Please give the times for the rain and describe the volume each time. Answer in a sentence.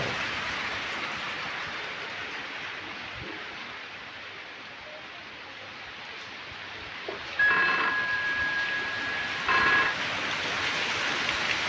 The rain can be heard from 0.0 to 11.6 s, getting quieter then louder.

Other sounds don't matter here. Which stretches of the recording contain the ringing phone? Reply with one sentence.
You can hear the ringing phone from 7.3 to 9.9 s.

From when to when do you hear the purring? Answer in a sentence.
You can't hear the purring here.